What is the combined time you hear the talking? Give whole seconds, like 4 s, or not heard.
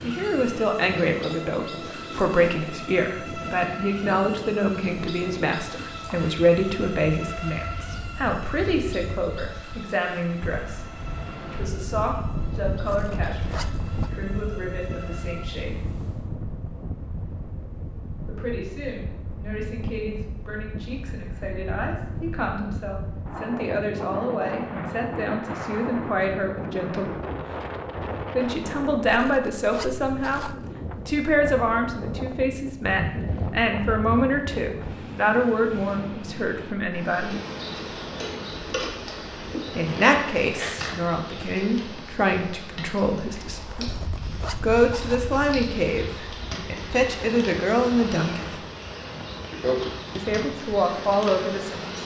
44 s.